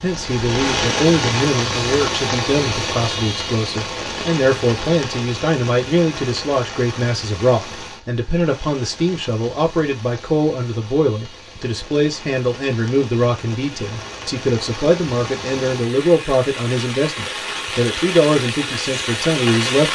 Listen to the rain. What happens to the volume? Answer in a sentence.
The volume of the rain goes down, then up.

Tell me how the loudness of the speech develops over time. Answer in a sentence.
The loudness of the speech stays about the same.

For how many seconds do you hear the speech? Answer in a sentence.
The speech can be heard for 20 seconds in total.